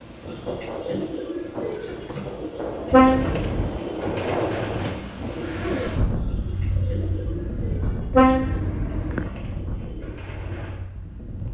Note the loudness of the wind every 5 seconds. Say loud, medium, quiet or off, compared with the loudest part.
loud, loud, medium.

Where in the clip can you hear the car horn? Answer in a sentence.
You can hear the car horn from 2.9 to 3.8 s and from 8.1 to 9.3 s.